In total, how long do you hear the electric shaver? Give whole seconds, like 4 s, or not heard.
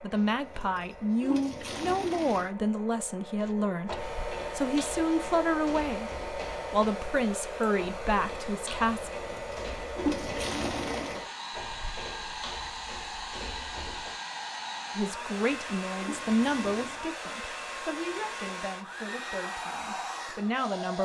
not heard.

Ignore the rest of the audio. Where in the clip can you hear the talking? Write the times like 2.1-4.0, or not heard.
0.0-9.1, 14.9-20.9.